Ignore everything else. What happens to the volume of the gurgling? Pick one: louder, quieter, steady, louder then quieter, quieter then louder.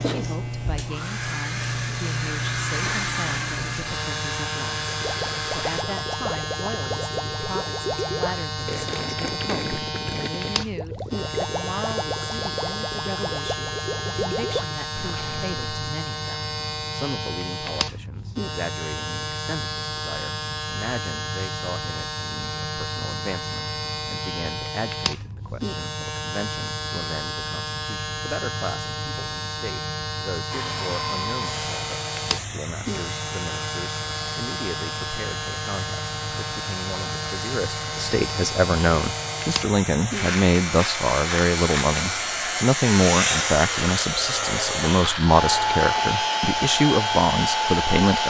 steady.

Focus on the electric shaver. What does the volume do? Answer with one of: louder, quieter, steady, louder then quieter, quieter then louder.
steady.